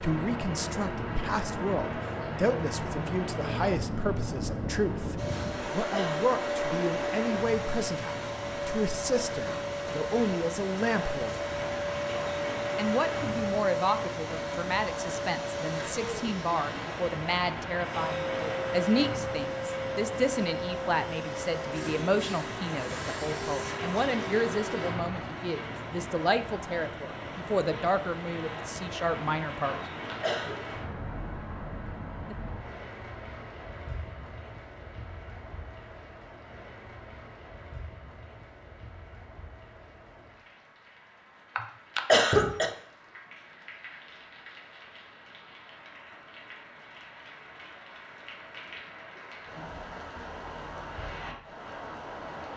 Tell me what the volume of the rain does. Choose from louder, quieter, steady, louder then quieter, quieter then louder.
quieter.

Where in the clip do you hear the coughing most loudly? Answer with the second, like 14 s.
42 s.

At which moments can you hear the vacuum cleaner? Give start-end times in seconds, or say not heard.
5.2-24.9.